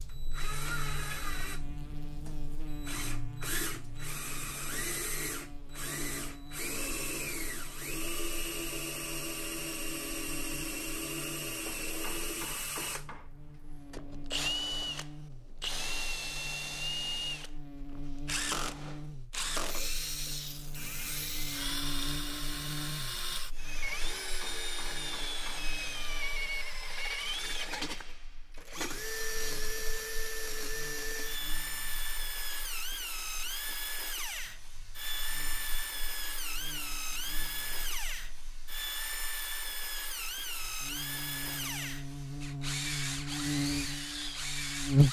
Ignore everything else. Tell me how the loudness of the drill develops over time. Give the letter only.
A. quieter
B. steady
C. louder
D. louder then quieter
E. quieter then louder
B.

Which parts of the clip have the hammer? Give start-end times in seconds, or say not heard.
11.7-13.3, 24.0-25.7.